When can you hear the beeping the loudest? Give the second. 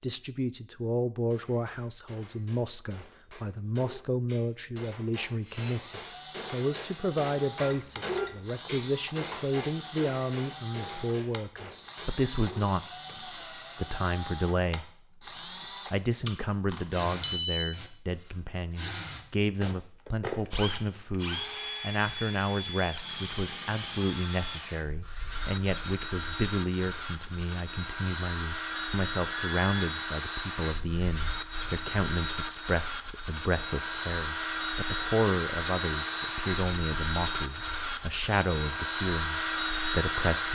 17 s.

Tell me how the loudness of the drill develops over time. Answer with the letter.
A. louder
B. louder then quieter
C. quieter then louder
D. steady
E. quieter
A.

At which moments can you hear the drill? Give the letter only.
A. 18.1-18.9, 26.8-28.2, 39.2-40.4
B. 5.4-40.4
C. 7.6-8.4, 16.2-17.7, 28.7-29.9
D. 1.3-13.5
B.